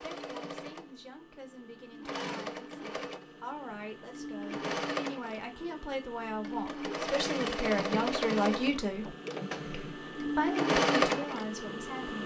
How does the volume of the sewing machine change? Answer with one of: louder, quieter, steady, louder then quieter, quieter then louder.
louder.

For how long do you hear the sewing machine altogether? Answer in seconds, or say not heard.
12 s.